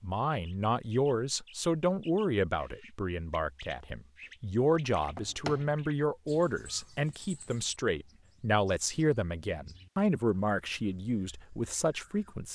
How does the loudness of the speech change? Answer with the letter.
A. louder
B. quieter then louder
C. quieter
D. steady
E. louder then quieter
D.